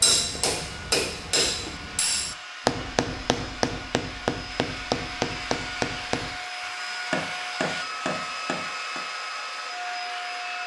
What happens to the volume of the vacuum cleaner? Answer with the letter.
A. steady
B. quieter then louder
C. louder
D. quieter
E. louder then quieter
C.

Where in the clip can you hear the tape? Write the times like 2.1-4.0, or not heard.
not heard.